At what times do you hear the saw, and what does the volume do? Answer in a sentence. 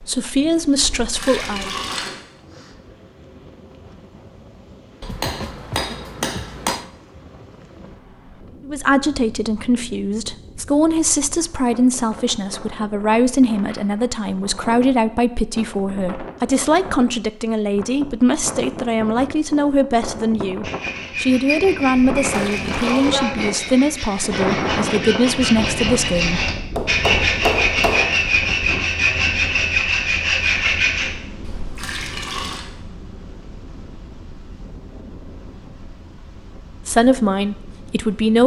You can hear the saw from 20.6 to 31.1 s, getting louder.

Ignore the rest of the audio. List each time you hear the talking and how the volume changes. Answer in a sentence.
You can hear the talking briefly from 0.0 to 1.7 s; from 8.7 to 26.5 s, at a steady volume; and briefly from 36.9 to 38.4 s.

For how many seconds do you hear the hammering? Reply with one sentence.
The hammering can be heard for 3 seconds in total.